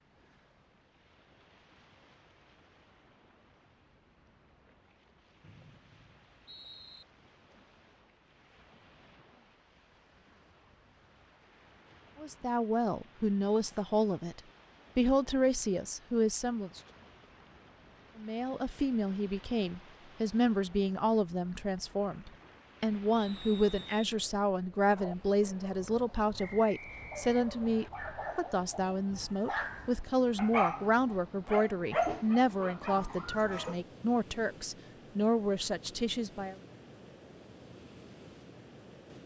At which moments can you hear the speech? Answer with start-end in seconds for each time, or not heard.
12.2-16.8, 18.1-36.5.